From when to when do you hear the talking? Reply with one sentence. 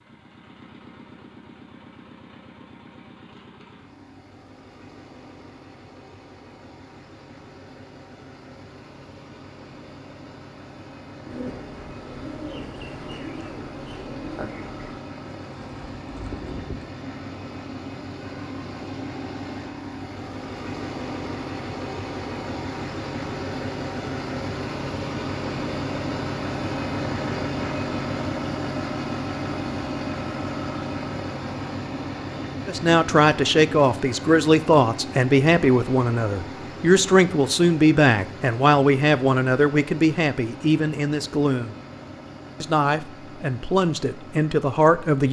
The talking can be heard from 32.6 to 41.8 s and from 42.6 to 45.2 s.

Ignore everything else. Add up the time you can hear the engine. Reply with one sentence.
The engine can be heard for 45 seconds in total.